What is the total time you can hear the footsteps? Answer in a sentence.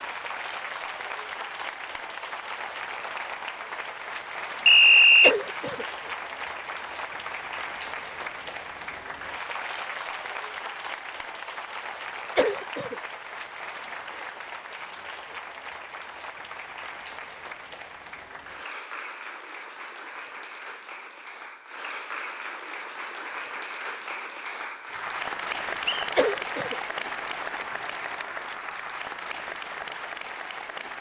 The footsteps can't be heard in this clip.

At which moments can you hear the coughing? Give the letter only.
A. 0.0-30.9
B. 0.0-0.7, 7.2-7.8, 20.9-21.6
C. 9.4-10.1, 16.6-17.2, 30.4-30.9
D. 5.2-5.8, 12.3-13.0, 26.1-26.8
D.